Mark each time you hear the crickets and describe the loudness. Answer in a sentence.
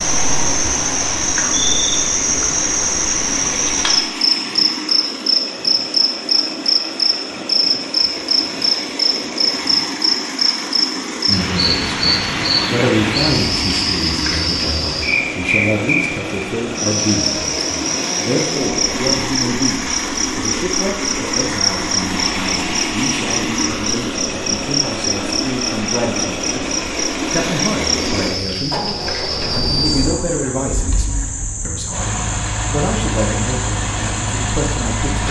The crickets can be heard from 0.0 to 35.2 s, getting quieter.